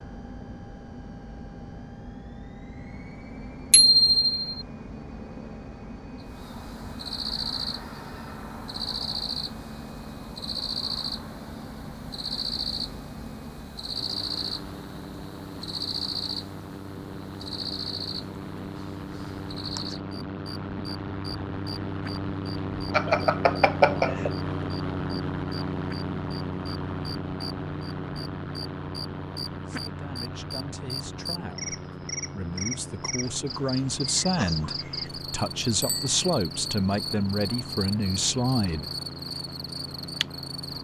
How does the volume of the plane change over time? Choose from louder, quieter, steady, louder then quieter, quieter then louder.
louder then quieter.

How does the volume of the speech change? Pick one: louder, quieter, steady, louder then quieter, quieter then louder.
louder.